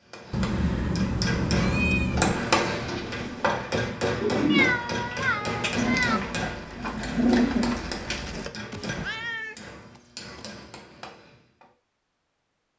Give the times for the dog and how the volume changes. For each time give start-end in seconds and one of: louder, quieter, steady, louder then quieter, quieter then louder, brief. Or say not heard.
not heard.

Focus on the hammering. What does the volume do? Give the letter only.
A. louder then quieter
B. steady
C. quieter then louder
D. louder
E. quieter
E.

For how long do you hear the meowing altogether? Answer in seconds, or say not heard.
6 s.